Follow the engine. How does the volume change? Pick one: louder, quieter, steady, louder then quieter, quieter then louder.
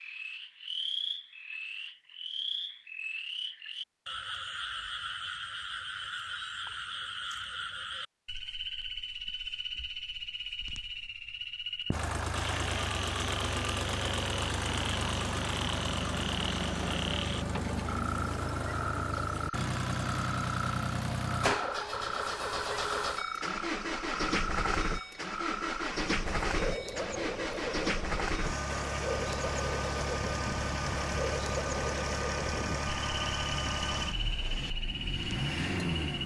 steady.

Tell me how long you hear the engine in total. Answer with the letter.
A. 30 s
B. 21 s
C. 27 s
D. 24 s
D.